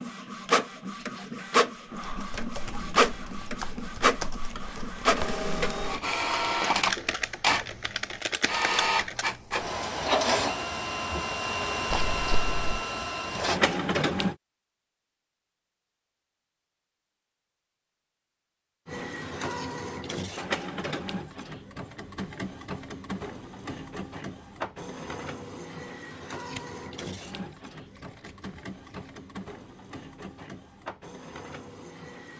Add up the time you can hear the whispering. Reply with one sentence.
You can't hear the whispering here.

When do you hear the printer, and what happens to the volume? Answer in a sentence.
You can hear the printer from 0.0 to 14.3 s, at a steady volume; and from 18.9 to 32.3 s, getting quieter.